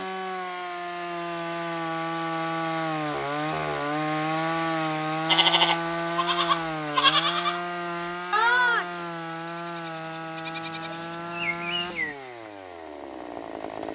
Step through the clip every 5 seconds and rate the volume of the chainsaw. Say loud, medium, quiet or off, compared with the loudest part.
loud, loud, medium.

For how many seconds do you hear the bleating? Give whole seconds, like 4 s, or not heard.
7 s.